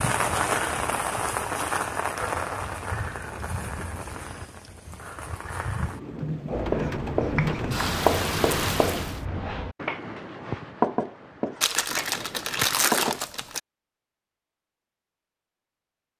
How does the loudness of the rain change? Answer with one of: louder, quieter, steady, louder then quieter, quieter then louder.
quieter then louder.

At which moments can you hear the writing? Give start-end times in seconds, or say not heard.
6.5-13.2.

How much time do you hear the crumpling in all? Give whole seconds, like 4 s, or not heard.
2 s.